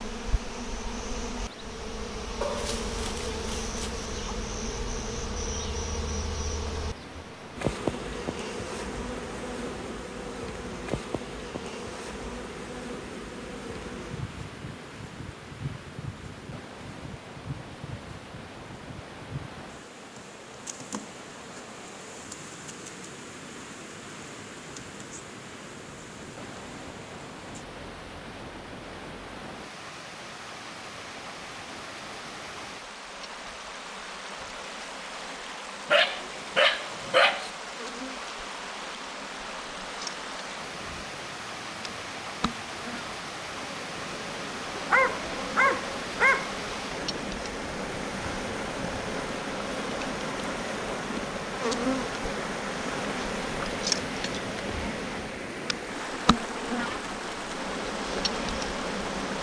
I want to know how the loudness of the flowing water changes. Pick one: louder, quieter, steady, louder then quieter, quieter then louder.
louder.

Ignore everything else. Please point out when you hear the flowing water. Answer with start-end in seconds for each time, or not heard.
0.0-59.3.